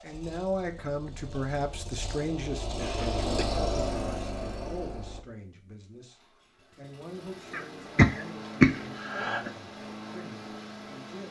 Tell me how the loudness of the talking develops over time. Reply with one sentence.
The loudness of the talking goes down.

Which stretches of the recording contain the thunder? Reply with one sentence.
You can't hear the thunder here.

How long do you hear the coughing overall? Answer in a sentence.
The coughing can be heard for 3 seconds in total.